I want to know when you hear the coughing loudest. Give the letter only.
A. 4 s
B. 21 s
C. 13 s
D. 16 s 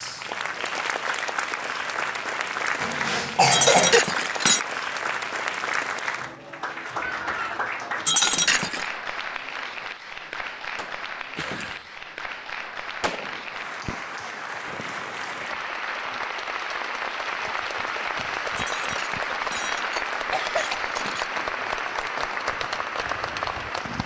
A.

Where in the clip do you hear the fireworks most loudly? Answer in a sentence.
The loudest moment of the fireworks is at 13 seconds.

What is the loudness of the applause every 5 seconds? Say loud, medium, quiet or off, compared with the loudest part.
loud, loud, medium, loud, loud.